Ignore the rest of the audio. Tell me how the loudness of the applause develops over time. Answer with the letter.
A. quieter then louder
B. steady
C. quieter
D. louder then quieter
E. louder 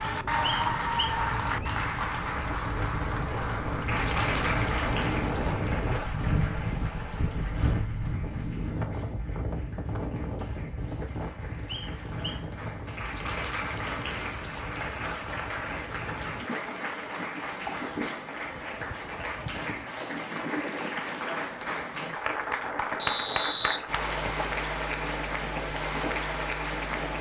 A.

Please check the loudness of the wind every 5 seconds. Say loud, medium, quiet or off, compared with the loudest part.
loud, loud, medium, medium, medium, medium.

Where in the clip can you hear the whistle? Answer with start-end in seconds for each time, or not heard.
0.7-1.8, 11.7-12.4, 22.9-24.4.